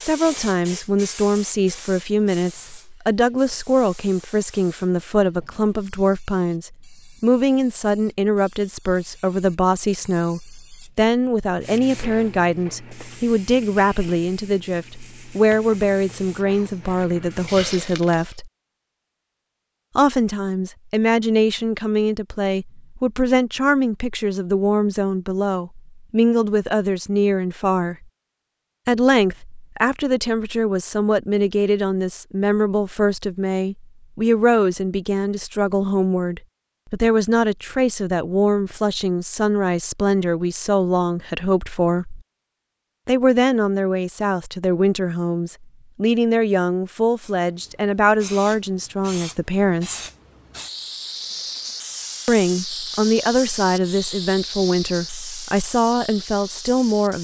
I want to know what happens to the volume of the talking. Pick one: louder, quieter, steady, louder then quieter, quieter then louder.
steady.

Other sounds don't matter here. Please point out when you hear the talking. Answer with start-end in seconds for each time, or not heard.
0.0-18.5, 19.9-28.1, 28.9-42.2, 43.0-50.0, 52.2-57.1.